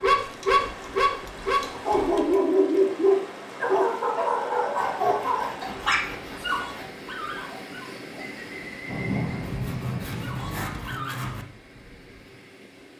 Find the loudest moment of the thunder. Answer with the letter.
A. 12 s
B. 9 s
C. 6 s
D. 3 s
B.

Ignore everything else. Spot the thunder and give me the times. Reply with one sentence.
You can hear the thunder from 8.8 to 10.7 s.